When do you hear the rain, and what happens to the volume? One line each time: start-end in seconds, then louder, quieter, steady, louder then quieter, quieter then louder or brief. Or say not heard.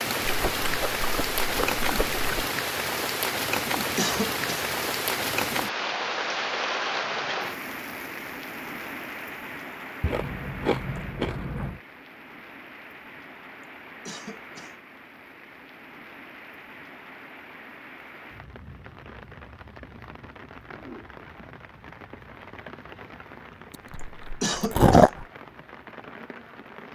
0.0-26.9 quieter.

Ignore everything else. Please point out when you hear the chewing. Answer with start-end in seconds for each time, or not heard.
0.2-2.5, 10.0-11.8, 23.7-25.2.